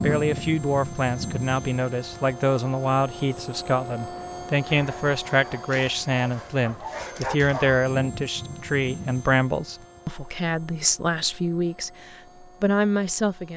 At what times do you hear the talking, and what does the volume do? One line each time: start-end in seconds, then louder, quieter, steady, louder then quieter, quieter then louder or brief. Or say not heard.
0.0-13.5 steady.